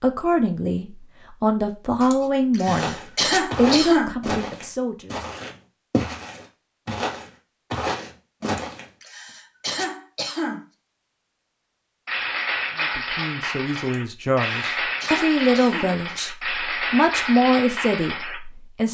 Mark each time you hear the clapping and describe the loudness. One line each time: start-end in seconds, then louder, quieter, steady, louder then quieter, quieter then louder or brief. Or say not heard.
12.1-18.4 steady.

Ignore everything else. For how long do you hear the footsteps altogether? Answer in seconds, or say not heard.
6 s.